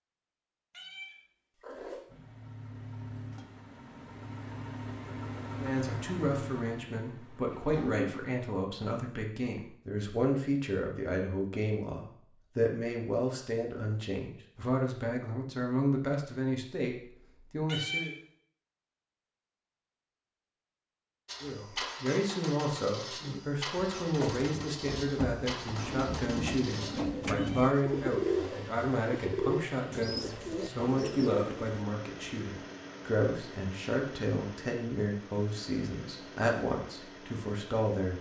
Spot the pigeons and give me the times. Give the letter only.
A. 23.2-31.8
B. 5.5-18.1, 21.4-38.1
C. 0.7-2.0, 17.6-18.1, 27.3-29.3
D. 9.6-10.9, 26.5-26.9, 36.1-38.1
A.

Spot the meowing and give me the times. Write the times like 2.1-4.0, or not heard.
0.7-2.0, 17.6-18.1, 27.3-29.3.